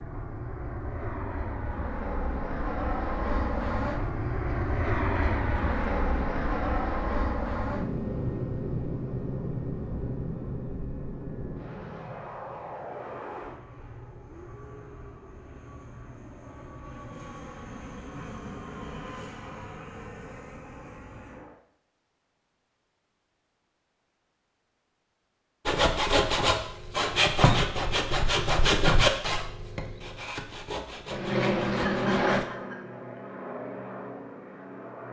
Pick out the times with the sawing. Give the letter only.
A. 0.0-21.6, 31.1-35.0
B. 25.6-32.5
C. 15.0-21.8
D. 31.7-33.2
B.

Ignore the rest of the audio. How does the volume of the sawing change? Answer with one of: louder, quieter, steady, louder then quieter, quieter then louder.
quieter.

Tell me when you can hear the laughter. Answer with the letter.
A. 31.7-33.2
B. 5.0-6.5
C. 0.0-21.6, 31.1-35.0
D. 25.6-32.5
A.